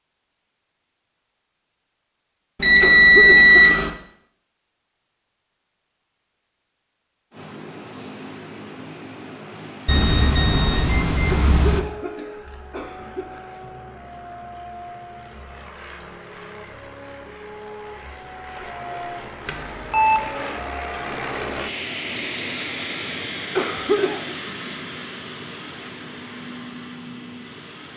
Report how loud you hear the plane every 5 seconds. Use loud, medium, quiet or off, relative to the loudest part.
off, medium, medium, medium, loud, medium.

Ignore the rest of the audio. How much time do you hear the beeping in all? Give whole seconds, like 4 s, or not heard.
4 s.